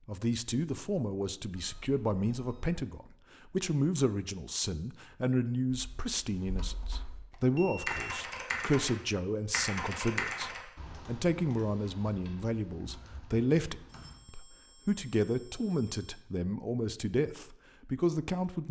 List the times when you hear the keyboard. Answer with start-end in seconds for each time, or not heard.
5.7-7.2, 7.8-14.2.